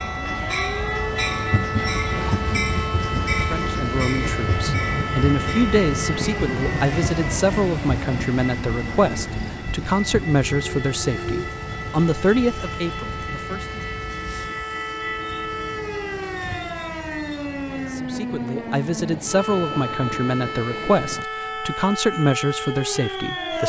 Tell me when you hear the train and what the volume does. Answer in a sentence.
The train can be heard from 0.0 to 23.6 s, getting quieter.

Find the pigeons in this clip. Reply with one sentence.
You can't hear the pigeons here.